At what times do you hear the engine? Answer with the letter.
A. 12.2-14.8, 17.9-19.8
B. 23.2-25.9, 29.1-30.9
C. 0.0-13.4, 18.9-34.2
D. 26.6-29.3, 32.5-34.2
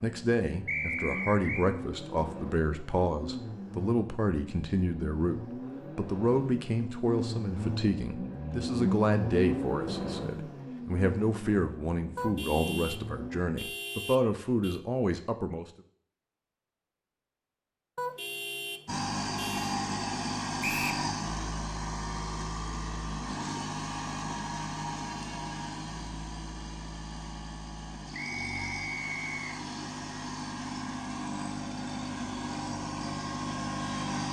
C.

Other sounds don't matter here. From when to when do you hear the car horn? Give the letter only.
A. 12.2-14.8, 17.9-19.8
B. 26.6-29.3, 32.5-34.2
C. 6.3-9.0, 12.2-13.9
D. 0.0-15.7
A.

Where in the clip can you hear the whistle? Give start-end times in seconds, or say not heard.
0.7-1.6, 20.6-21.1, 28.1-29.4.